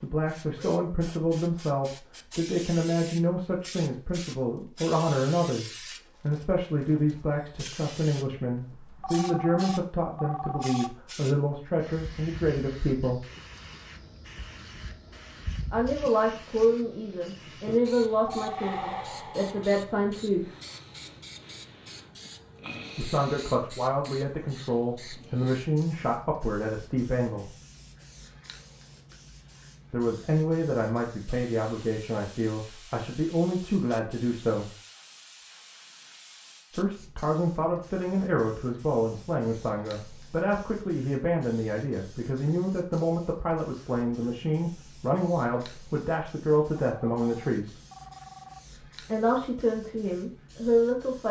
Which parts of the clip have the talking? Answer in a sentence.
The talking can be heard from 0.0 to 13.2 s, from 15.7 to 20.4 s, from 22.9 to 27.5 s, from 29.9 to 34.7 s, from 36.7 to 47.8 s and from 49.0 to 51.2 s.